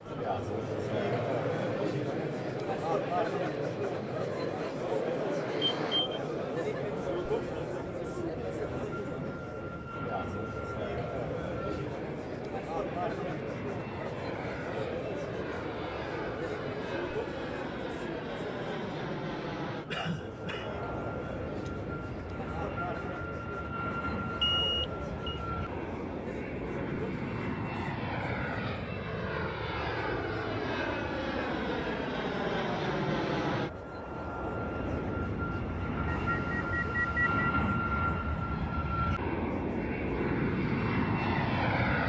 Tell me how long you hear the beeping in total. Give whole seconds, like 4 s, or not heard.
3 s.